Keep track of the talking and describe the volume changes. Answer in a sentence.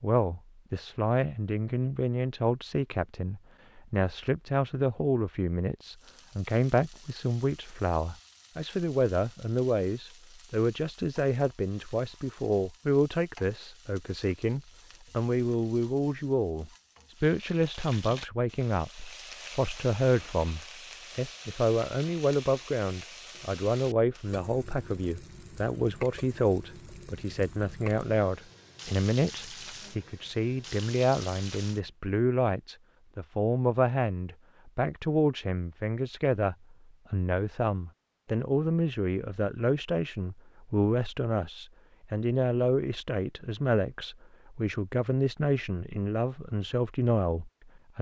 The loudness of the talking stays about the same.